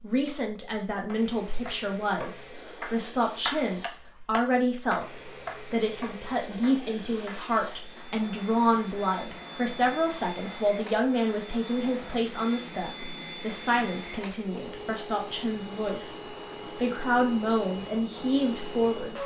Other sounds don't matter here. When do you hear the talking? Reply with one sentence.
You can hear the talking from 0.0 to 19.2 s.